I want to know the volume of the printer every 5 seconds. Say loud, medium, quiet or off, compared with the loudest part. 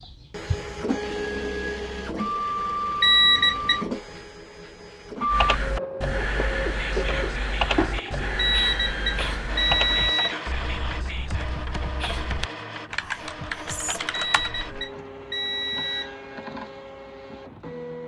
loud, loud, medium, medium.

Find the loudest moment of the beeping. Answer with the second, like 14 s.
3 s.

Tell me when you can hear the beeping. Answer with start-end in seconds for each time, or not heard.
3.0-3.8, 8.3-10.3, 14.1-16.1.